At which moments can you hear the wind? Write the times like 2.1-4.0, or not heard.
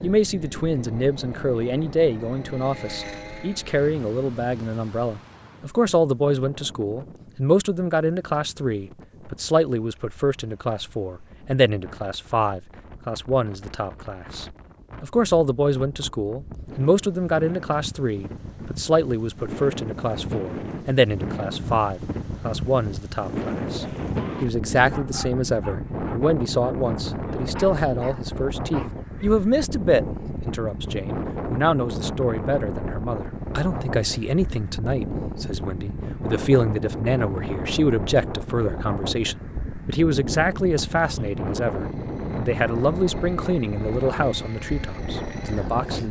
0.0-46.0.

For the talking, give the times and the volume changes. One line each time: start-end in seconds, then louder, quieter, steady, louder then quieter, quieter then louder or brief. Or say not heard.
0.0-46.0 steady.